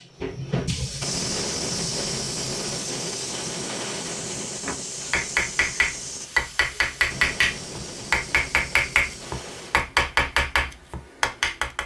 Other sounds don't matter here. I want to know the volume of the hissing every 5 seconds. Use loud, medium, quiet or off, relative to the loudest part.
loud, medium, off.